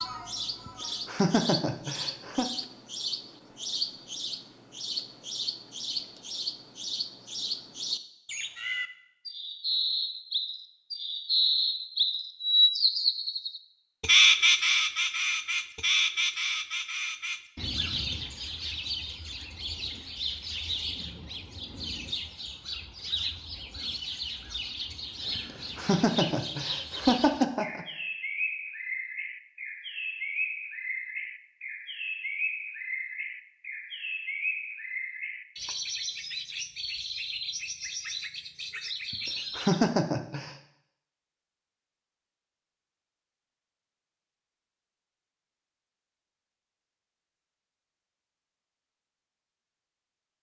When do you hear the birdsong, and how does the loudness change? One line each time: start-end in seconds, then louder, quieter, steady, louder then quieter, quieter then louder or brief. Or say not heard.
0.0-39.9 louder then quieter.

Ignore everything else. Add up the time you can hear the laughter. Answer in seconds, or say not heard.
6 s.